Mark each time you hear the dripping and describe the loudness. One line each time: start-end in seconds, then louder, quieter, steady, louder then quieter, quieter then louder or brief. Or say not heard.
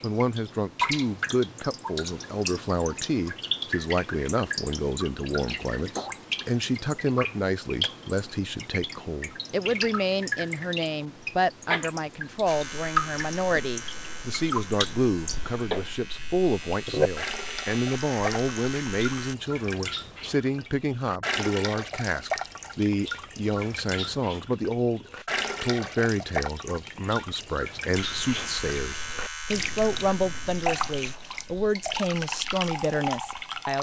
0.0-33.7 steady.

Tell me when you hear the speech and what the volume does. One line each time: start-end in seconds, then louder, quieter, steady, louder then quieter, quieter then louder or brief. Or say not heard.
0.0-33.7 steady.